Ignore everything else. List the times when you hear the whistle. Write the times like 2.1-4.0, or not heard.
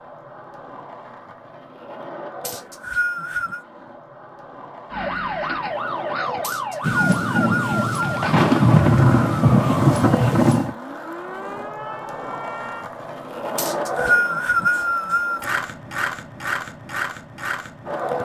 2.5-3.6, 6.4-8.2, 13.6-15.4.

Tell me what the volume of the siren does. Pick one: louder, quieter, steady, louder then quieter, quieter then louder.
quieter.